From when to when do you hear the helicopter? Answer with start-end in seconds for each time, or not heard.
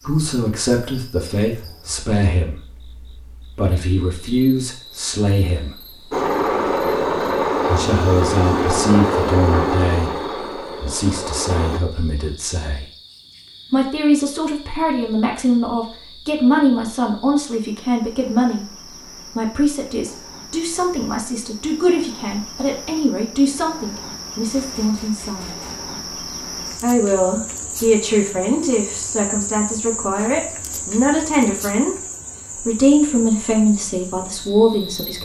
6.1-11.8.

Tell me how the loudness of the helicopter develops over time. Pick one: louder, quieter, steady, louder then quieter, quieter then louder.
quieter.